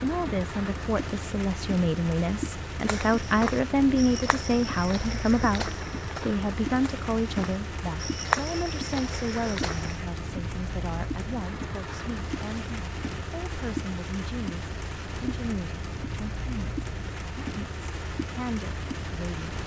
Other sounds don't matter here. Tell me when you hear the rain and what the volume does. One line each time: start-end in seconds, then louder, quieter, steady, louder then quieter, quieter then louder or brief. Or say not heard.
0.0-19.6 steady.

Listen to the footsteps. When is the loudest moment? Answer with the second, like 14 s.
8 s.